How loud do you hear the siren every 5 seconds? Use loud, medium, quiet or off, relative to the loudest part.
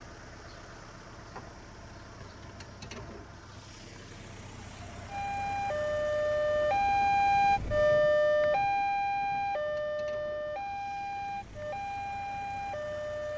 off, loud, medium.